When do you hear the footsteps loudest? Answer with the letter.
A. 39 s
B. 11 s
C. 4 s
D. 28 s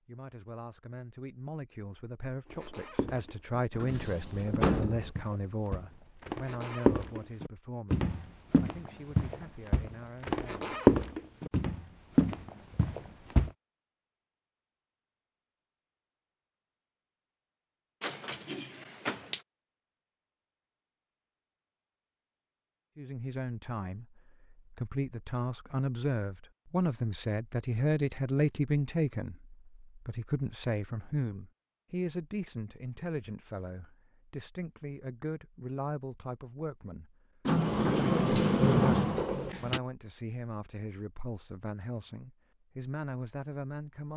B.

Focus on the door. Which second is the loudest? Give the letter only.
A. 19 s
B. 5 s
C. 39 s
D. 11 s
C.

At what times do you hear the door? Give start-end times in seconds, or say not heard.
3.8-5.1, 18.0-19.4, 37.5-39.8.